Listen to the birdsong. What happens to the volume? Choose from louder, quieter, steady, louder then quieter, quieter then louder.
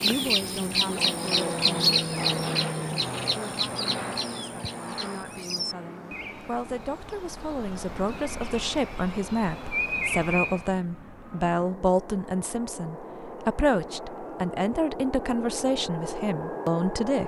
quieter then louder.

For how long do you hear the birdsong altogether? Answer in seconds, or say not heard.
11 s.